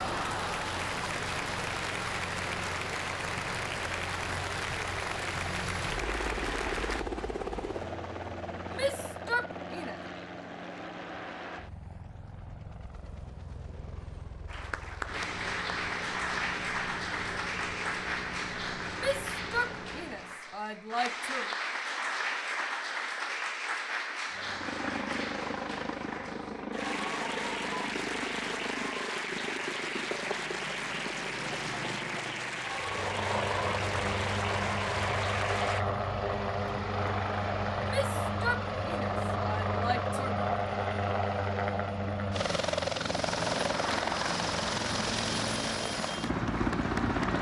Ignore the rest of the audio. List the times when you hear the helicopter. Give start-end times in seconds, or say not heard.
0.0-20.4, 24.3-47.3.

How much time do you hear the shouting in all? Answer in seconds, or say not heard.
6 s.